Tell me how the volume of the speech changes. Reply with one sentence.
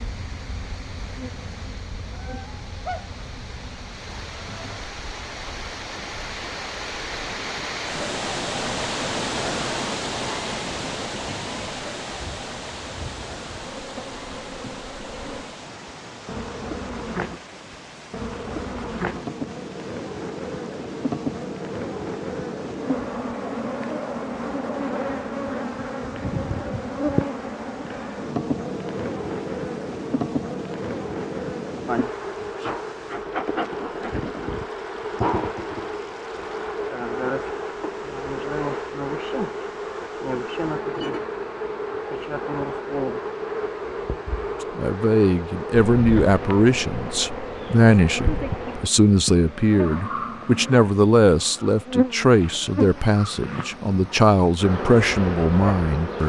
The volume of the speech stays about the same.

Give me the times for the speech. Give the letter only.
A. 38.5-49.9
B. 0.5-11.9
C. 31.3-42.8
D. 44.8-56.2
D.